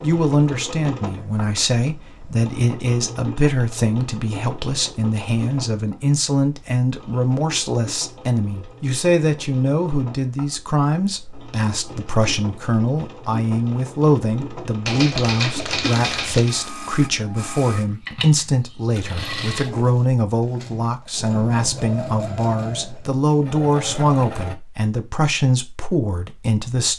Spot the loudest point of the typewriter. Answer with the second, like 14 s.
15 s.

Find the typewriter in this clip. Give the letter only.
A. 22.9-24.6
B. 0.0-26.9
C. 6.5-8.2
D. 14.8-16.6
D.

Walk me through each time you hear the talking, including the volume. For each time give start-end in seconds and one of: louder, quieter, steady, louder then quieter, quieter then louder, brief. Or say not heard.
0.0-26.9 steady.